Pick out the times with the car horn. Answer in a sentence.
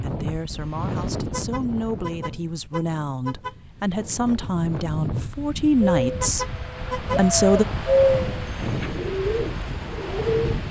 You can hear the car horn from 1.3 to 3.6 s and from 6.2 to 7.2 s.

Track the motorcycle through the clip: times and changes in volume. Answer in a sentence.
You can't hear the motorcycle here.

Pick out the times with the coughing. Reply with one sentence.
You can't hear the coughing here.